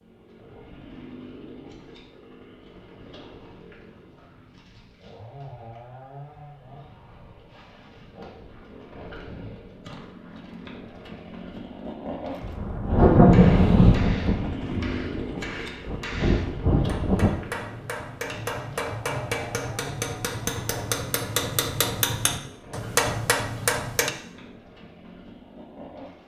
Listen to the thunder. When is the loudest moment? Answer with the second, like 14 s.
13 s.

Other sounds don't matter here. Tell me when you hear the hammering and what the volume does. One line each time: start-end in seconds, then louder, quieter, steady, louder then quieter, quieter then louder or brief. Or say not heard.
12.9-24.1 louder.